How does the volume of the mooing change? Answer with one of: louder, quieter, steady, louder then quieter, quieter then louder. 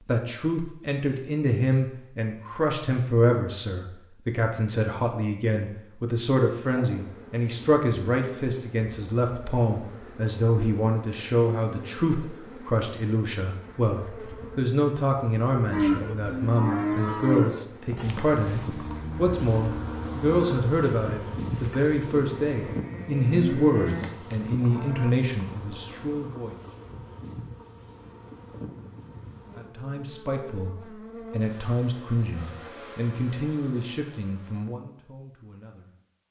quieter then louder.